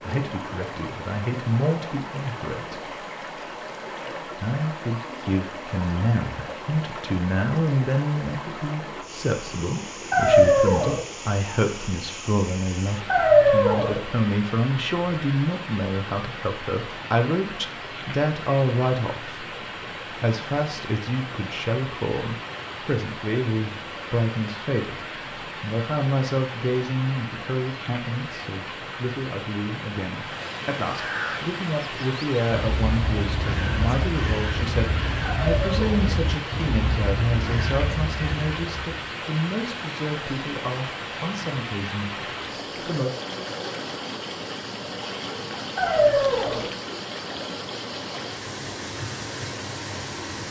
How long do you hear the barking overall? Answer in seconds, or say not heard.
4 s.